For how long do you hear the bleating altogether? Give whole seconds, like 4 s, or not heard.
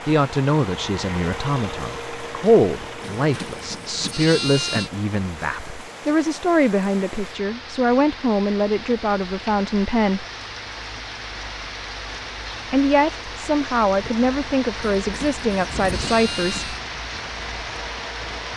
4 s.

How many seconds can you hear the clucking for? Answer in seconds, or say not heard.
not heard.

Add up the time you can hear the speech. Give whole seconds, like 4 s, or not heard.
14 s.